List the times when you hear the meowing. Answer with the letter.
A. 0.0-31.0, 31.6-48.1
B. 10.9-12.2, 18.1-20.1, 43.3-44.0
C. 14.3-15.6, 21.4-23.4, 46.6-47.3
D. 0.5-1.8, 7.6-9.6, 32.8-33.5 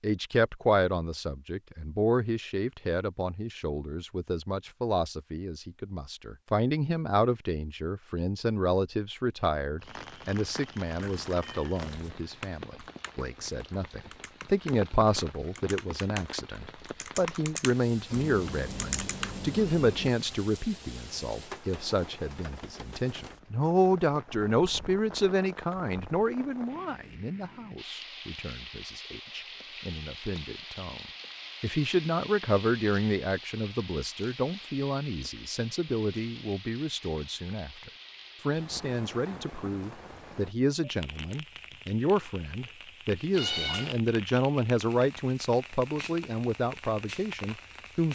B.